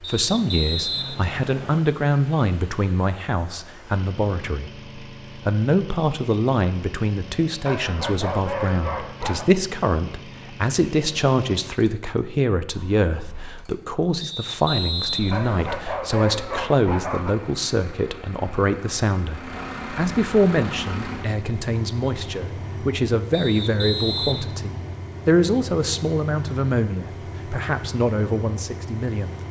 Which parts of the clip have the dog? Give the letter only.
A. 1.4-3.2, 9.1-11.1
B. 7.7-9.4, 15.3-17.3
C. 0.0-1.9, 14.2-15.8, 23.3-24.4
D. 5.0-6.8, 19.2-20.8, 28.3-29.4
B.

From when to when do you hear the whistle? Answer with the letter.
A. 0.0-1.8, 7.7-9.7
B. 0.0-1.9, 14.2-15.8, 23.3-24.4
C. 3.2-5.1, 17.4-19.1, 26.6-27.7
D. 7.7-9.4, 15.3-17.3
B.